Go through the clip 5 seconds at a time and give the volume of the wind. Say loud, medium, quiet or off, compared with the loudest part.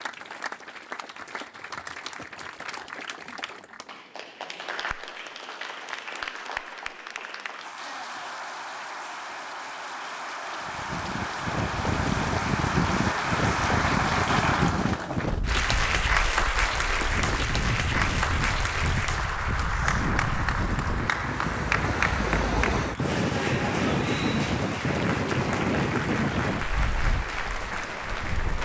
off, off, loud, medium, loud, loud.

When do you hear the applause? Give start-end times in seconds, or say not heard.
0.0-28.6.